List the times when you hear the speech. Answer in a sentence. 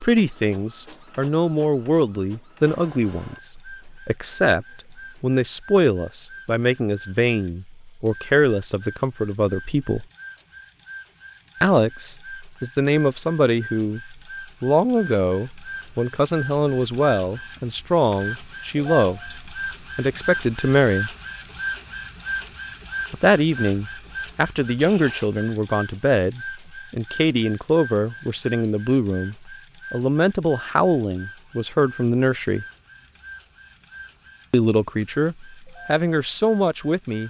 The speech can be heard from 0.0 to 10.1 s, from 11.6 to 21.1 s, from 23.1 to 32.6 s and from 34.5 to 37.2 s.